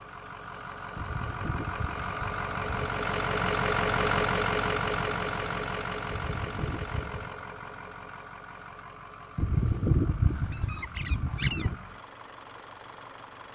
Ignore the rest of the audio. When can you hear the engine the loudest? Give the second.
4 s.